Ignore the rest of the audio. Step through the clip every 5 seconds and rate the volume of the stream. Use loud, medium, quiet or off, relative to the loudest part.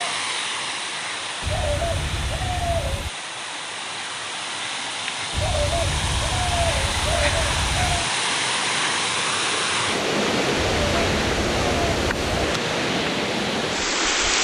medium, loud, loud.